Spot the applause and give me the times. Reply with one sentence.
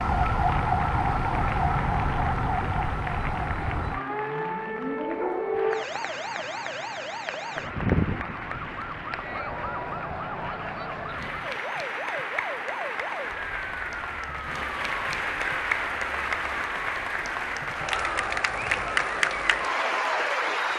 The applause can be heard from 0.0 to 20.7 s.